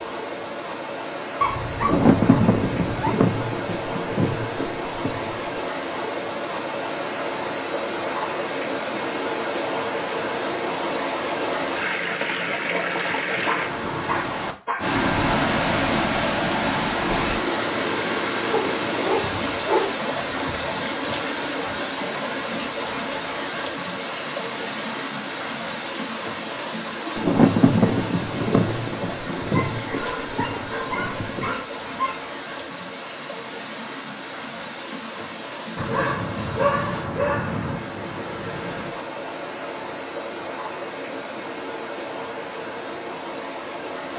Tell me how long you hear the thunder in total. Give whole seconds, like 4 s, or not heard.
8 s.